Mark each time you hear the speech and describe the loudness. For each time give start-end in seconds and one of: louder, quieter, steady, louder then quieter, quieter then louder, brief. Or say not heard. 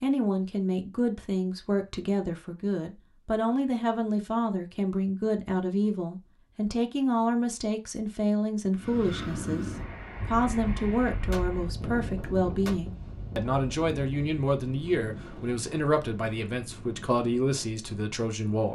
0.0-18.6 steady.